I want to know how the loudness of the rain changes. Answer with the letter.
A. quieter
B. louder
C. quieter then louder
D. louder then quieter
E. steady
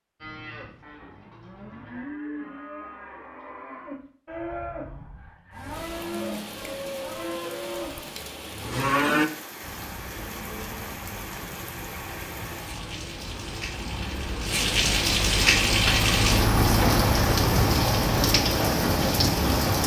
B.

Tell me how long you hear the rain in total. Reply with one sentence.
The rain can be heard for 14 seconds in total.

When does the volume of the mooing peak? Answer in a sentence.
The volume of the mooing peaks at 9 seconds.